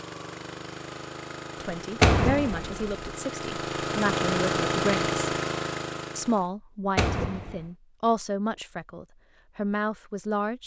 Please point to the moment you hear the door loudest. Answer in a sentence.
The volume of the door peaks at 2 seconds.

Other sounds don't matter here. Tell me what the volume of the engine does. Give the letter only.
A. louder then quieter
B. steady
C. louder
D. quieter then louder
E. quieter
C.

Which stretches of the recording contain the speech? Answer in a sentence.
The speech can be heard from 1.6 to 5.2 s and from 6.2 to 10.6 s.